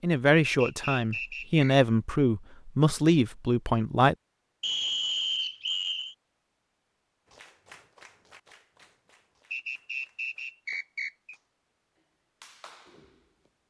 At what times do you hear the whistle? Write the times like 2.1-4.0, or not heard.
0.4-1.8, 4.6-6.2, 9.5-11.3.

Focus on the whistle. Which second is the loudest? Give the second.
5 s.